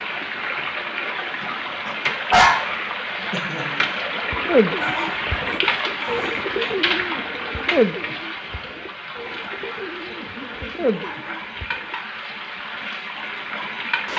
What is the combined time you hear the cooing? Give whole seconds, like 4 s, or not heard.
8 s.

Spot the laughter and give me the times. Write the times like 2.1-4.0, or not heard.
3.3-4.0.